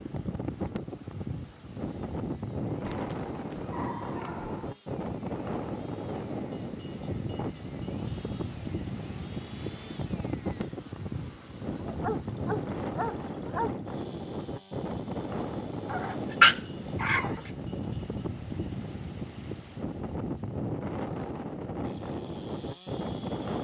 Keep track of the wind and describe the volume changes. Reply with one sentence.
The volume of the wind stays about the same.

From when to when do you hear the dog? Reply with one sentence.
You can hear the dog from 2.8 to 4.7 s, from 11.8 to 13.8 s and from 15.9 to 17.5 s.